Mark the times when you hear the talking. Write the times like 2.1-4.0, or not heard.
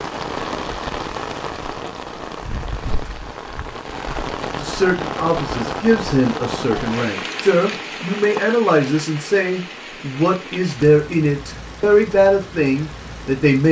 4.6-13.6.